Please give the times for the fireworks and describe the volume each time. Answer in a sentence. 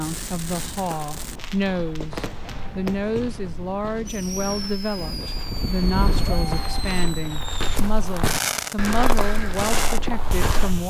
You can hear the fireworks from 0.0 to 10.8 s, getting louder.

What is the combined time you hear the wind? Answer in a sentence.
You can hear the wind for 7 seconds altogether.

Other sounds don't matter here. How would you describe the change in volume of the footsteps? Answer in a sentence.
The volume of the footsteps goes up.